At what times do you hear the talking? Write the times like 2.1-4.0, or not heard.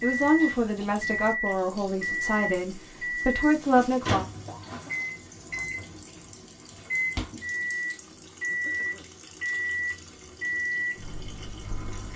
0.0-4.2.